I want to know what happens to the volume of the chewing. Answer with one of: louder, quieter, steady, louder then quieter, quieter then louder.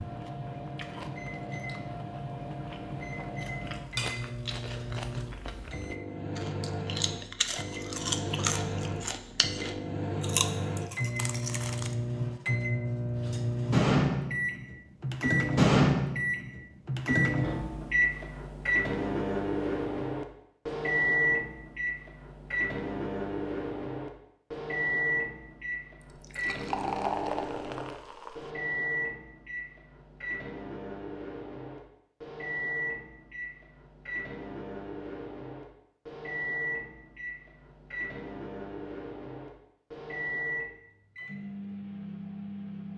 louder.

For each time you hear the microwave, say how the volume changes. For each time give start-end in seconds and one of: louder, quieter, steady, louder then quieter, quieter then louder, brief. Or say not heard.
0.0-42.9 louder then quieter.